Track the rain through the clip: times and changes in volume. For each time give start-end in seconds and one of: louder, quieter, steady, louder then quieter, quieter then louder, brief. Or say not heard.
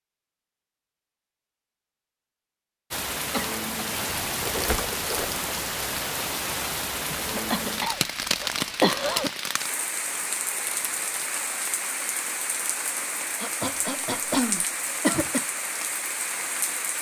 2.9-16.9 steady.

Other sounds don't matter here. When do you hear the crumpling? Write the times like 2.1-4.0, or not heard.
4.4-5.5, 10.6-11.3.